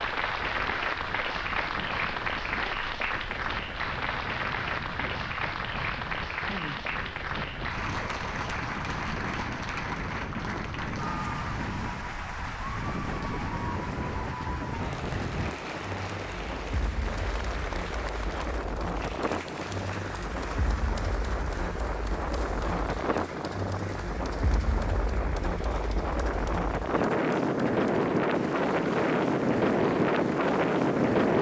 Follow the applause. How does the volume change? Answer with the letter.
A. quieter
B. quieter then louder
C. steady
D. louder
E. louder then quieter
A.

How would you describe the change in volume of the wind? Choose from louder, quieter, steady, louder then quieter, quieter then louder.
louder.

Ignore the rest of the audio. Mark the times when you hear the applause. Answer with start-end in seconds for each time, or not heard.
0.0-31.3.